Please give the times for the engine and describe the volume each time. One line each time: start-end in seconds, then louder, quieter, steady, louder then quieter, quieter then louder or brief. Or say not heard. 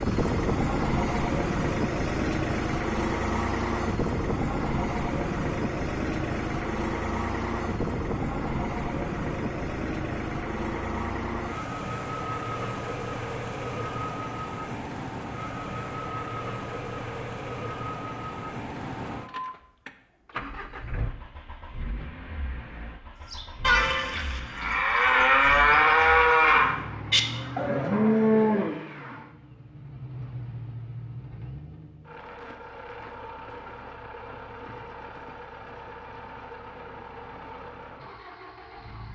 0.0-39.1 quieter.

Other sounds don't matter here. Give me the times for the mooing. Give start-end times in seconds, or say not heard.
23.3-28.8.